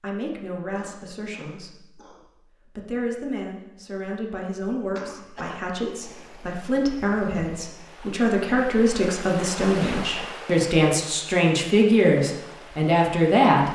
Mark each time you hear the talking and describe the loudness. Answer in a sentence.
The talking can be heard from 0.0 to 13.7 s, getting louder.